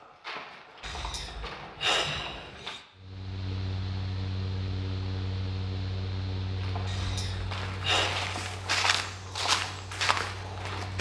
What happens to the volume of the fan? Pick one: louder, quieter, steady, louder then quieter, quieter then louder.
quieter.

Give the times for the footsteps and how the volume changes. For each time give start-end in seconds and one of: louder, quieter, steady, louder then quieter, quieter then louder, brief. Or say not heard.
0.0-2.8 brief
6.5-10.9 louder.